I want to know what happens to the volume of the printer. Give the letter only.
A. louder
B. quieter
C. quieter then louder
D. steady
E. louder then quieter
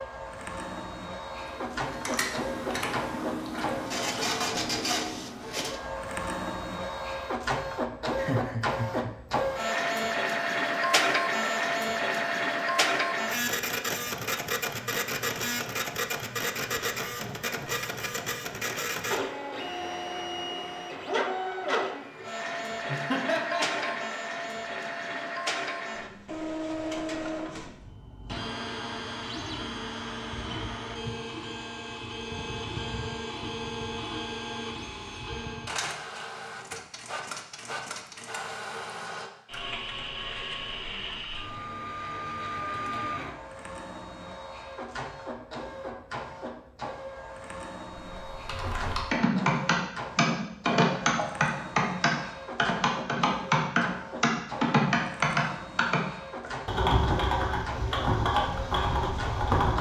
B.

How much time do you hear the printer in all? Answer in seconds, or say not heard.
60 s.